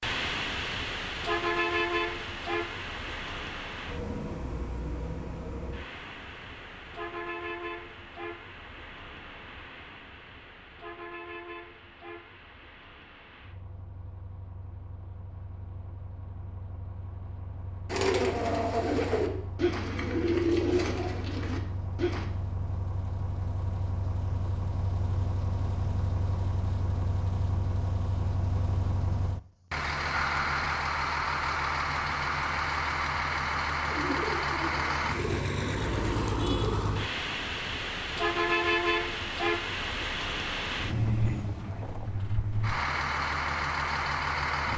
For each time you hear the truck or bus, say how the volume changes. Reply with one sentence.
You can hear the truck or bus from 0.0 to 44.7 s, getting quieter then louder.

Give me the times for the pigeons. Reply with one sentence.
The pigeons can be heard from 17.9 to 22.2 s and from 33.9 to 36.9 s.